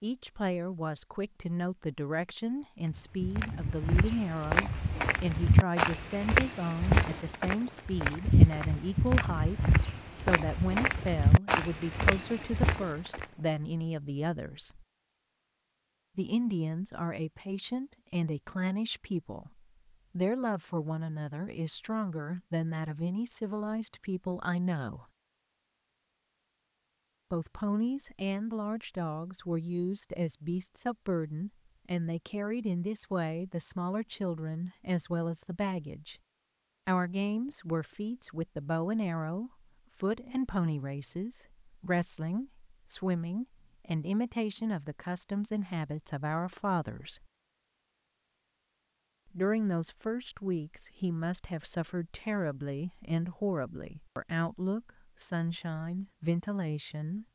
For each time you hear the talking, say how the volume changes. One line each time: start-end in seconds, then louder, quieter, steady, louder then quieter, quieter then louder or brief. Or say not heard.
0.0-14.8 steady
16.1-25.1 steady
27.3-36.1 steady
36.9-47.2 steady
49.4-57.2 steady.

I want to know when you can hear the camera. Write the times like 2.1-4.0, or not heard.
not heard.